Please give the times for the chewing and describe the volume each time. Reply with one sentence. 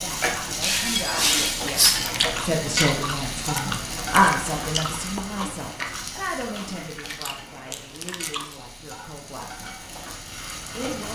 You can hear the chewing from 1.6 to 8.6 s, getting quieter.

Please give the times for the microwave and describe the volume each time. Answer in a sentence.
You can't hear the microwave here.